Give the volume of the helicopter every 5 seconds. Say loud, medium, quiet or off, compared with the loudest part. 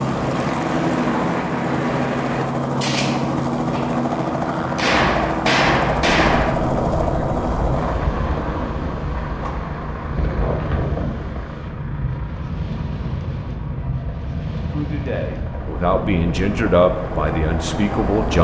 loud, loud, quiet, medium.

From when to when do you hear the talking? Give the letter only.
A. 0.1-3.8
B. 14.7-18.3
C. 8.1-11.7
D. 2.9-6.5
B.